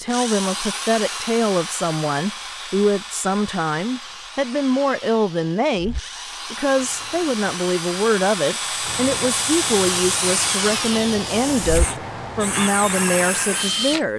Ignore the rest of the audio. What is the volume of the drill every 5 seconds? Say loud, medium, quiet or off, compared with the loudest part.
medium, loud, loud.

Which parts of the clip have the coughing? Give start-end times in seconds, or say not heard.
not heard.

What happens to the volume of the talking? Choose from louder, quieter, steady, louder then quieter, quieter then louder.
steady.